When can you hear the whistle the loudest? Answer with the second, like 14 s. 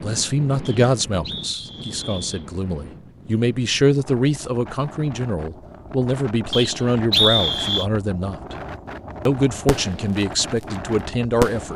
7 s.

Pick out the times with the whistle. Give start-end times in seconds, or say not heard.
0.7-2.5, 6.5-7.8.